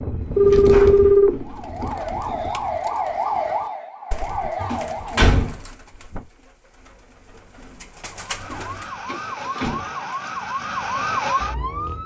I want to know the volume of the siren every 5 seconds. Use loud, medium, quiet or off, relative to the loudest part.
loud, medium, loud.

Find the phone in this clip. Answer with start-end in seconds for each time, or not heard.
0.3-1.9.